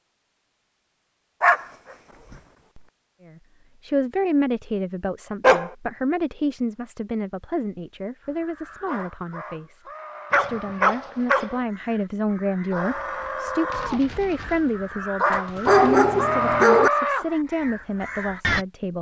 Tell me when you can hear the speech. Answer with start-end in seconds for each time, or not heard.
3.2-18.9.